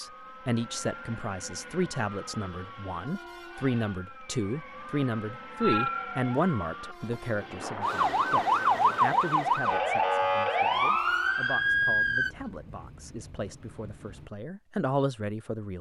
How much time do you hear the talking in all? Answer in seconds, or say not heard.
16 s.